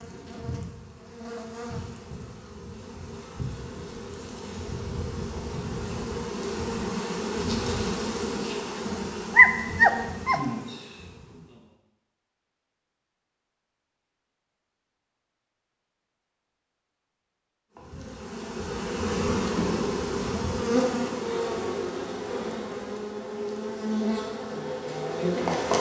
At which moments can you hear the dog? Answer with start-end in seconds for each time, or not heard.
9.3-10.4.